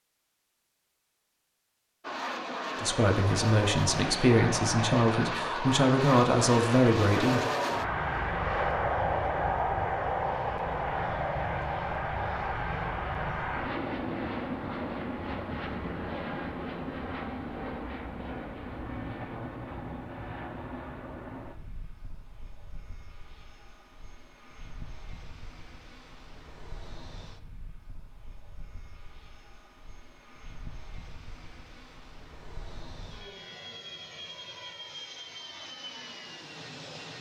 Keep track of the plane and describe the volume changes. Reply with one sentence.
The loudness of the plane goes down, then up.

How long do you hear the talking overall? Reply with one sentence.
The talking can be heard for 5 seconds in total.